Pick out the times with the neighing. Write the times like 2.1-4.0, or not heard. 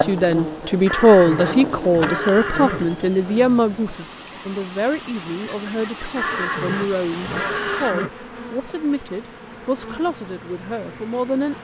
0.8-2.9, 6.2-8.1.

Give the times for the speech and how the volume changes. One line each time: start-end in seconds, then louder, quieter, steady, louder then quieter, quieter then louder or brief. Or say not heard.
0.0-11.5 quieter.